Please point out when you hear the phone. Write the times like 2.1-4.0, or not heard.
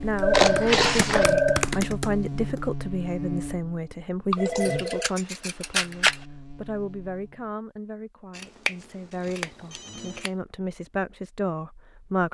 0.2-1.6, 4.3-5.1, 9.5-10.3.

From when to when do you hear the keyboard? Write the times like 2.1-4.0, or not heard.
0.0-2.6.